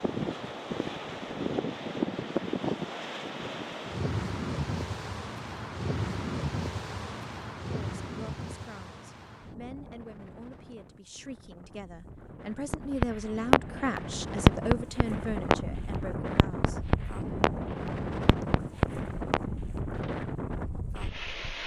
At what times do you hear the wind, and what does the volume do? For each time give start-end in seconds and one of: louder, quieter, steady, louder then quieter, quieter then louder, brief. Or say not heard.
0.0-21.6 quieter then louder.